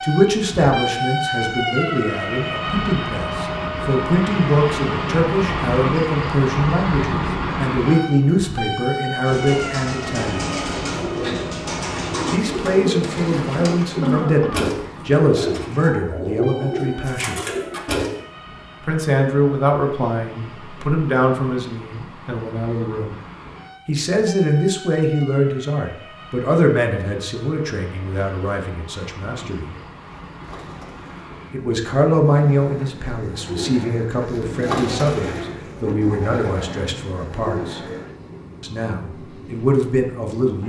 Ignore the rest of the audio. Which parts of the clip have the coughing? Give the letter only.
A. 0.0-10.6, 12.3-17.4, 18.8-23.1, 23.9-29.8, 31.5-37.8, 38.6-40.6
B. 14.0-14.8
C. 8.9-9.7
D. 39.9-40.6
B.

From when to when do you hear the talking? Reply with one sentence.
You can hear the talking from 0.0 to 10.6 s, from 12.3 to 17.4 s, from 18.8 to 23.1 s, from 23.9 to 29.8 s, from 31.5 to 37.8 s and from 38.6 to 40.6 s.